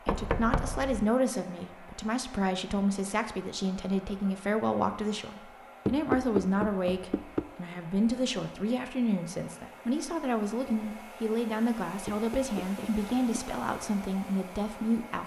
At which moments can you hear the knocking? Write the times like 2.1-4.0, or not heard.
0.1-1.1, 5.8-7.5, 12.1-13.4.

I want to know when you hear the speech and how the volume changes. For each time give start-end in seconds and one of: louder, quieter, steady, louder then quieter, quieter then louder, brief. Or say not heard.
0.1-15.2 steady.